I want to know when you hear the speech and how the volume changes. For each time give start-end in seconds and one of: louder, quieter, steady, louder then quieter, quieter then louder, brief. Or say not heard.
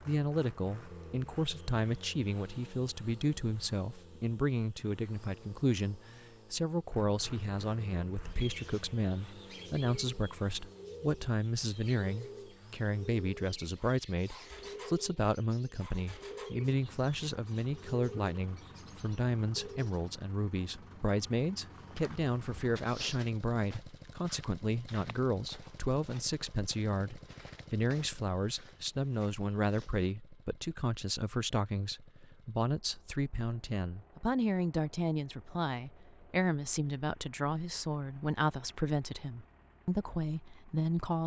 0.0-41.2 steady.